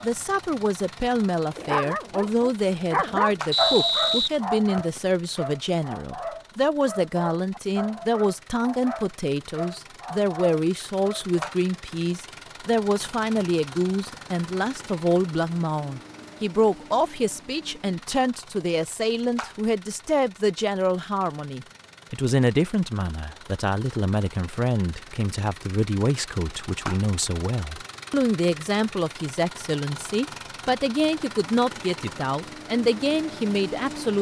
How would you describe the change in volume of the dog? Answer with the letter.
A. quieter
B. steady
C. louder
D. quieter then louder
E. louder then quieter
A.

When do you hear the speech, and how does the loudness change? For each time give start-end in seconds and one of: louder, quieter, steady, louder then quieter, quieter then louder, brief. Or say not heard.
0.0-34.1 steady.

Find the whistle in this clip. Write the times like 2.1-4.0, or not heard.
3.5-5.0.